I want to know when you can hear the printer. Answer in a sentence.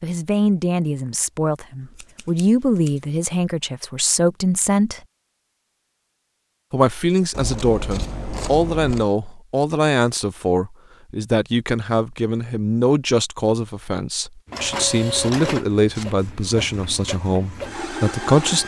You can hear the printer from 14.4 to 18.6 s.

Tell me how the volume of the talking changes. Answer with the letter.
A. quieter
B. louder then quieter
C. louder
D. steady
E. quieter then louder
D.